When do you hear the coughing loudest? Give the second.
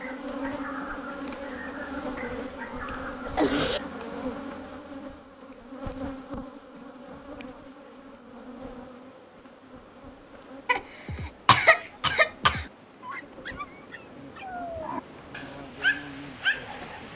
12 s.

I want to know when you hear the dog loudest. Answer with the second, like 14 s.
16 s.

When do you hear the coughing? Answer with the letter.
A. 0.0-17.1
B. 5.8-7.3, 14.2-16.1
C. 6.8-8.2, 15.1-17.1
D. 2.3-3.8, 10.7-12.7
D.